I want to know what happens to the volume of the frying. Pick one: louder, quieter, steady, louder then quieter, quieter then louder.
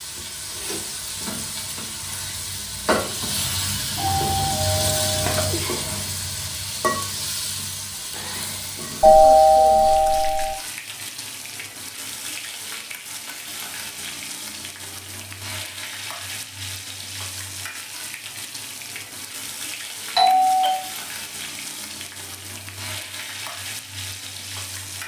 quieter.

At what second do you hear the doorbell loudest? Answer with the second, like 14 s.
9 s.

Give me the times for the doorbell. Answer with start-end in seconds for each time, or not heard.
4.0-5.5, 9.0-10.6, 20.1-20.8.